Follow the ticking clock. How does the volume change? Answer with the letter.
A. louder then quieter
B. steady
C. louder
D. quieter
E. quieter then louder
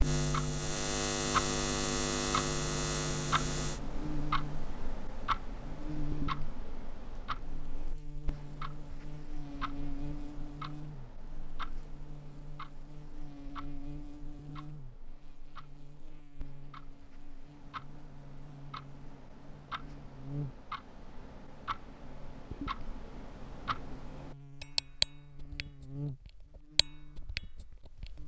E.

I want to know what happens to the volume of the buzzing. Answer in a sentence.
The loudness of the buzzing goes down.